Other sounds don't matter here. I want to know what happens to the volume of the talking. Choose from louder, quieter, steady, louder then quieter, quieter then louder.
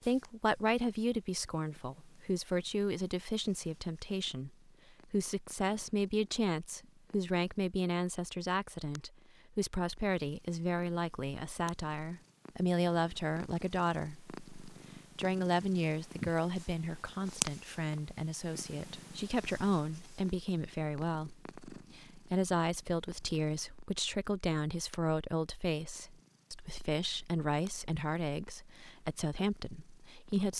steady.